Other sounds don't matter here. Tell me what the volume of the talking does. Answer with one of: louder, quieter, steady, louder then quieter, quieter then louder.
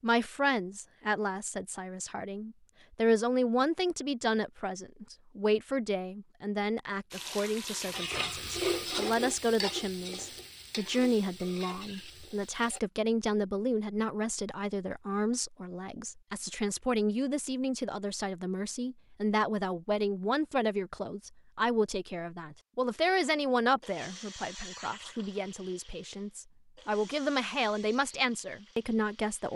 steady.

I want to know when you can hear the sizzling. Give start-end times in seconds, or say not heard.
7.1-12.8.